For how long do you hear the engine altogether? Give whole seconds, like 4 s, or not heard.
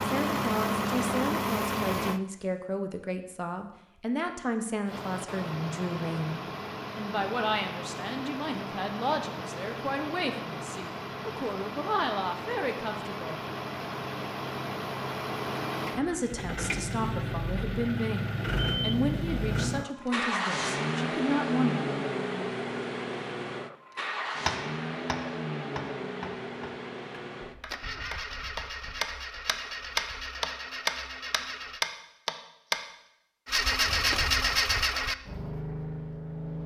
32 s.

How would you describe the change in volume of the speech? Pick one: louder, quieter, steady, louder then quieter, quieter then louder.
steady.